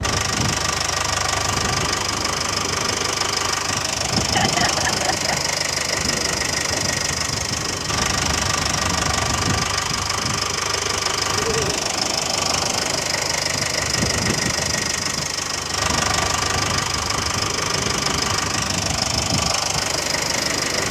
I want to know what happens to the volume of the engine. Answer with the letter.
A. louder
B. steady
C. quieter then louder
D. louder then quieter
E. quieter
B.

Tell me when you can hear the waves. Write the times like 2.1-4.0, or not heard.
0.0-20.8.